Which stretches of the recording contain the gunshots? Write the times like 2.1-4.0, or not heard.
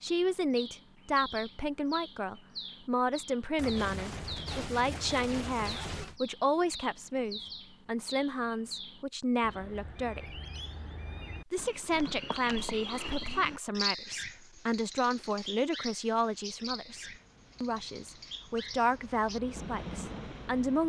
3.5-6.2.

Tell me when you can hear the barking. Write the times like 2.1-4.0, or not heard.
not heard.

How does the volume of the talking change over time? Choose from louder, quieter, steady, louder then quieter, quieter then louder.
steady.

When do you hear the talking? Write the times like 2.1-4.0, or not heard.
0.0-10.3, 11.5-20.8.